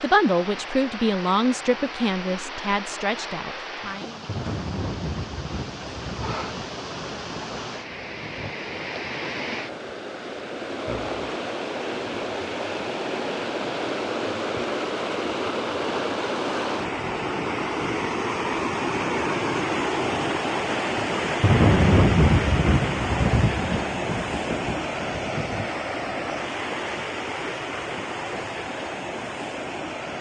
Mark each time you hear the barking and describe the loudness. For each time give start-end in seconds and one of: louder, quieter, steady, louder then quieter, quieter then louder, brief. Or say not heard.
not heard.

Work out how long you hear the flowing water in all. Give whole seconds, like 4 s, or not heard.
30 s.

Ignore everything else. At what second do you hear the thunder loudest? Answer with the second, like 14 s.
22 s.